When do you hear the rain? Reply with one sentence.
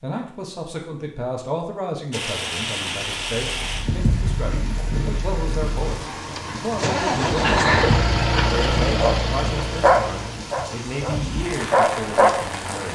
The rain can be heard from 2.1 to 12.9 s.